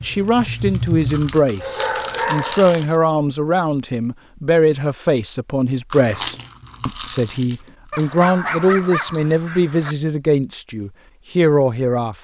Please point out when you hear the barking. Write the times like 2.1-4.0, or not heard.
1.6-2.9, 7.9-9.9.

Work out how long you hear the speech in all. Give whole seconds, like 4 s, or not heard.
12 s.